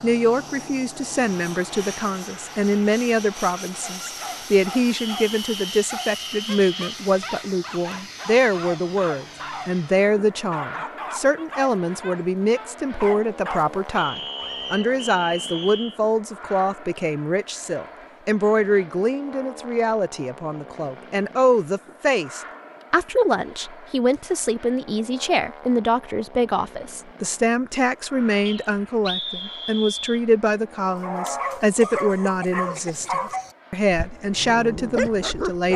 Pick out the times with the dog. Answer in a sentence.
You can hear the dog from 4.0 to 14.8 s and from 30.8 to 35.7 s.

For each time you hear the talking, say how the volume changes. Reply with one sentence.
The talking can be heard from 0.0 to 35.7 s, at a steady volume.